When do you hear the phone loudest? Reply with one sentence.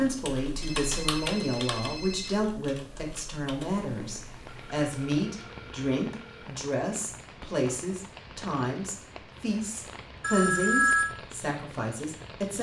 The volume of the phone peaks at 11 seconds.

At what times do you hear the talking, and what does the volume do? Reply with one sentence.
The talking can be heard from 0.0 to 12.5 s, at a steady volume.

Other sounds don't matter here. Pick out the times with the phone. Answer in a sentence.
You can hear the phone from 0.6 to 2.4 s, from 4.5 to 6.5 s and from 10.2 to 11.1 s.